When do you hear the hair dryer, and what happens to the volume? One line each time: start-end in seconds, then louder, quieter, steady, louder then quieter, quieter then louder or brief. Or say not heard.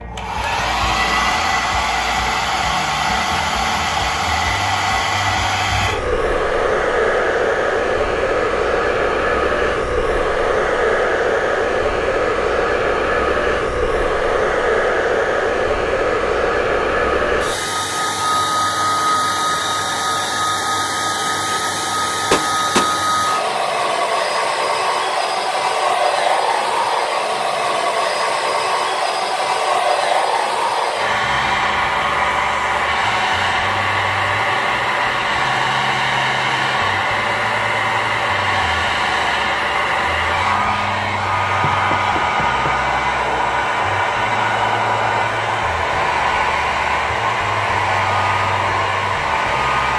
0.0-49.9 steady.